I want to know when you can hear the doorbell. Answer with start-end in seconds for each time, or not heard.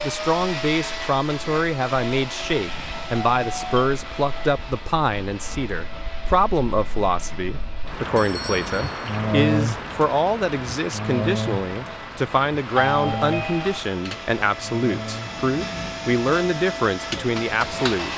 2.6-3.9, 8.2-9.2, 12.8-13.9.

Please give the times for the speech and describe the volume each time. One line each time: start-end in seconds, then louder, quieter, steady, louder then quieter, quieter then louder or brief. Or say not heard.
0.0-18.1 steady.